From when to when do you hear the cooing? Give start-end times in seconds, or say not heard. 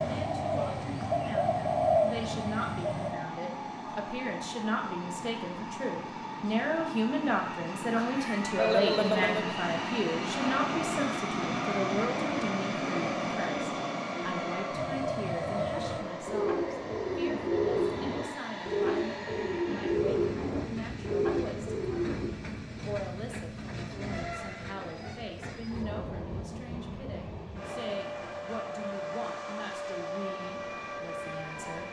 0.0-3.1, 14.7-22.4.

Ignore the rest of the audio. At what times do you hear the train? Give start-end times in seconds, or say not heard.
0.0-31.8.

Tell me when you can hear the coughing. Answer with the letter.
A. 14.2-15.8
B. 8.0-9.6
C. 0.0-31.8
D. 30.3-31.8
B.